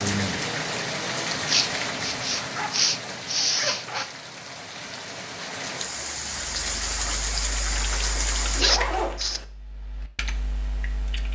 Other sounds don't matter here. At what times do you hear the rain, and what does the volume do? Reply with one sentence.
The rain can be heard from 0.0 to 8.7 s, getting quieter then louder.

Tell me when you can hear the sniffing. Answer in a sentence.
The sniffing can be heard from 1.4 to 4.1 s and from 8.6 to 9.4 s.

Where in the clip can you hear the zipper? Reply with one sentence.
You can hear the zipper from 2.4 to 4.0 s and from 8.1 to 9.4 s.